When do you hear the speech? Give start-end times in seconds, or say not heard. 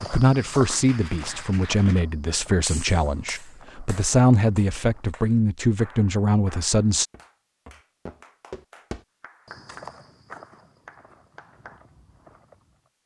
0.0-7.0.